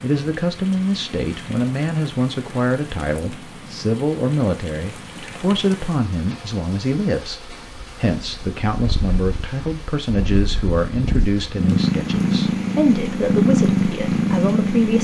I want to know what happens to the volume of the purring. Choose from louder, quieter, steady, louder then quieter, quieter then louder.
louder.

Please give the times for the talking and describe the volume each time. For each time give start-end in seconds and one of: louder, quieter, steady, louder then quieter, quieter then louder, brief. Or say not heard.
0.0-14.9 steady.